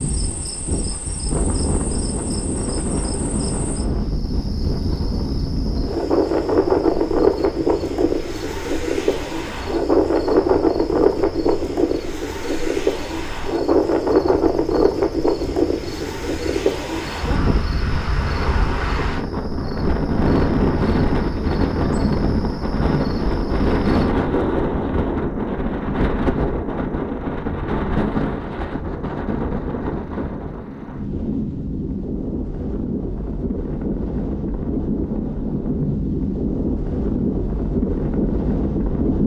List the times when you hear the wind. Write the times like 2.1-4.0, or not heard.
0.0-39.2.